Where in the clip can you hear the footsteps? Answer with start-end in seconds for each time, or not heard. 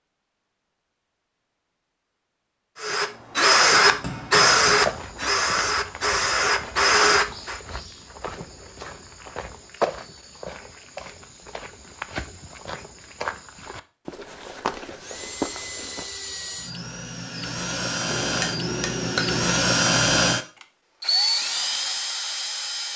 4.7-16.1.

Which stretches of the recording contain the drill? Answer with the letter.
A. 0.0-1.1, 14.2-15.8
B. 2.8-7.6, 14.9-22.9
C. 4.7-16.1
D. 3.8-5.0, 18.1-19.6
B.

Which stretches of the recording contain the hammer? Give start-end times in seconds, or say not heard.
3.8-5.0, 18.1-19.6.